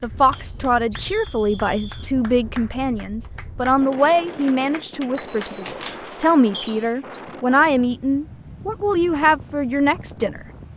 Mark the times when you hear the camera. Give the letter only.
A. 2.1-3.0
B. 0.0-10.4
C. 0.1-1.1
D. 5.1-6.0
D.